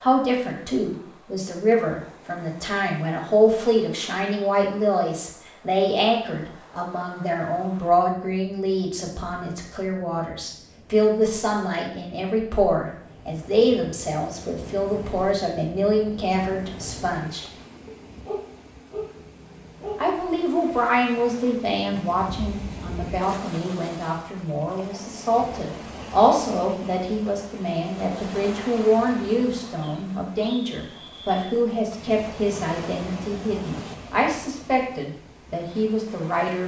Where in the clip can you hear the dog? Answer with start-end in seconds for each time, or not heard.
17.9-20.2.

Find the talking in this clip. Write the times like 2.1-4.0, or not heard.
0.0-17.4, 19.9-36.6.